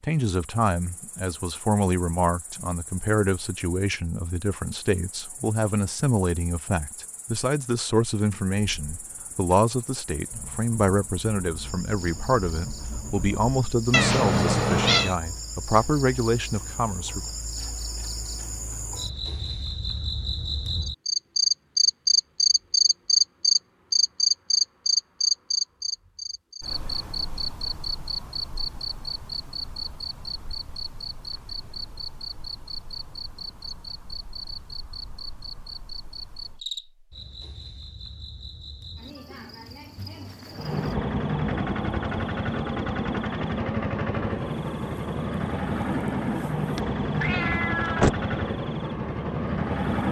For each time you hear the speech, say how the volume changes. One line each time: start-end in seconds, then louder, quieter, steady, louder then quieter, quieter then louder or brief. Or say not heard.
0.0-17.2 steady.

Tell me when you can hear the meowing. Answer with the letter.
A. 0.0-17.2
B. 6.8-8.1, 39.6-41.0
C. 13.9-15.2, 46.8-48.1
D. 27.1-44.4
C.